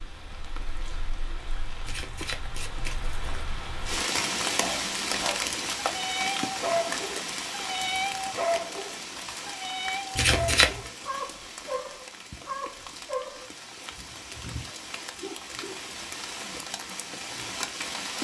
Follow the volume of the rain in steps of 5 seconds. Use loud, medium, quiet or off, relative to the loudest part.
loud, loud, medium, loud.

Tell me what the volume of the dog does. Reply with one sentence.
The loudness of the dog goes down.